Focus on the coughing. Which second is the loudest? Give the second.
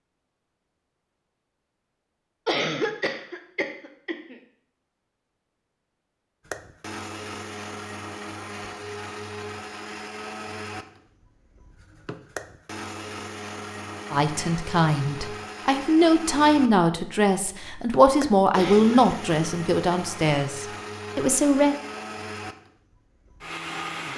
3 s.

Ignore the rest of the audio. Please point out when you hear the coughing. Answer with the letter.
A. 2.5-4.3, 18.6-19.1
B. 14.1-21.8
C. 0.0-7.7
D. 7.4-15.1
A.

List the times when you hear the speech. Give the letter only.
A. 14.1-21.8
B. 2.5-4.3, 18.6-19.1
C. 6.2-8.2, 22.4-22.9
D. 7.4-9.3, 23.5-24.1
A.